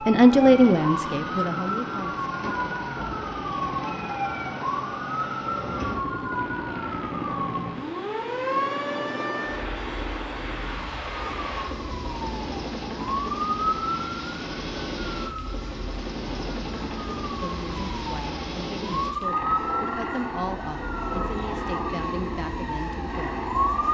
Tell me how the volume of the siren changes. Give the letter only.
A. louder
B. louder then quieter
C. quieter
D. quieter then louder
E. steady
D.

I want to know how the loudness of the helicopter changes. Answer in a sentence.
The volume of the helicopter stays about the same.